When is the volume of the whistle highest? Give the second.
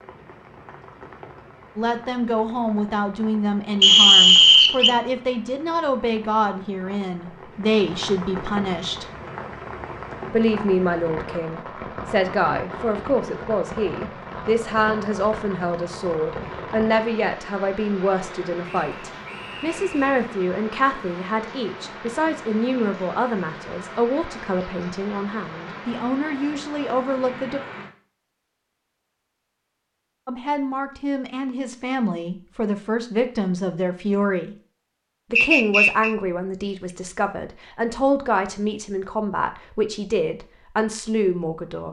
4 s.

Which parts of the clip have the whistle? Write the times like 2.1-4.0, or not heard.
3.8-5.0, 18.6-20.1, 35.4-36.1.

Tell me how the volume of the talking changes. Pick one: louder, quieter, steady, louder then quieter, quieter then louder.
steady.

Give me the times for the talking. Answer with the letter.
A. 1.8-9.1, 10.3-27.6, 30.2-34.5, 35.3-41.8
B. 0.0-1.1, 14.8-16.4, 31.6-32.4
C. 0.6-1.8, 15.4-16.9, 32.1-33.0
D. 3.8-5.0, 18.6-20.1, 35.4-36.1
A.